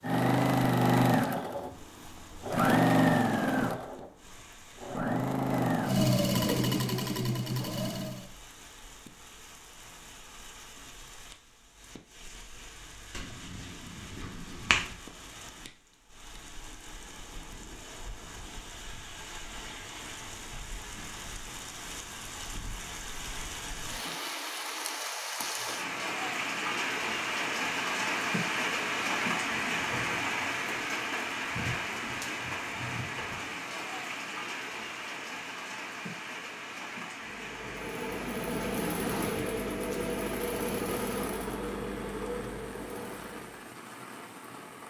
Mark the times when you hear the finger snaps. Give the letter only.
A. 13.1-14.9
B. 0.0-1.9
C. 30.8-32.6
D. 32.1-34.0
A.